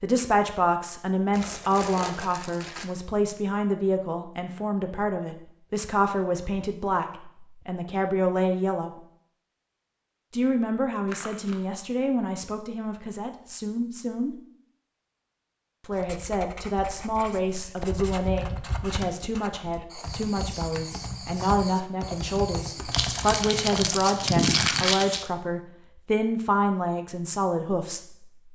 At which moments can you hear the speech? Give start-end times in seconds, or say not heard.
0.0-8.9, 10.3-14.3, 15.8-28.0.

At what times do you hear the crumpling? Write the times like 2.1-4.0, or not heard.
1.3-2.9, 11.1-11.6, 22.9-25.3.